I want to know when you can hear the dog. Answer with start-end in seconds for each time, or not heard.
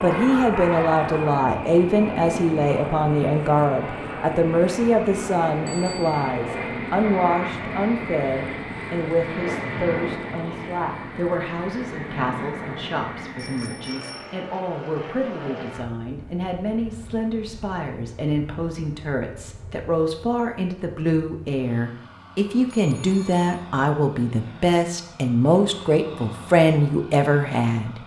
0.0-1.4.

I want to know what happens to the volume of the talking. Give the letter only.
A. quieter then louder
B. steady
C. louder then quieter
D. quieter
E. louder
A.